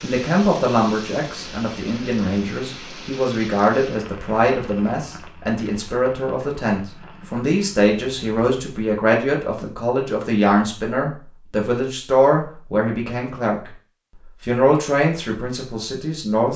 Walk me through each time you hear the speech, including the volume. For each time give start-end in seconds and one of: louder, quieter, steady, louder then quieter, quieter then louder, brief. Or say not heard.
0.0-13.7 steady
14.4-16.5 brief.